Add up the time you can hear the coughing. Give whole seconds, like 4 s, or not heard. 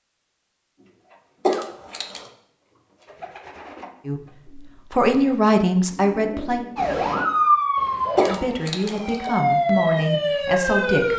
2 s.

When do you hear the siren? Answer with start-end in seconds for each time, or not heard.
6.8-11.1.